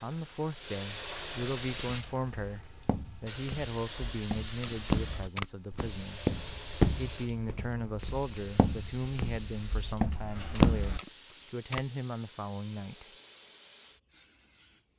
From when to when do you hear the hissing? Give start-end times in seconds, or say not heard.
0.0-14.9.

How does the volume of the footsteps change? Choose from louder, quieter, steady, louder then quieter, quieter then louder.
louder then quieter.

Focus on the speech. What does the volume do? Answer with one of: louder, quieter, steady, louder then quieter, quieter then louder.
steady.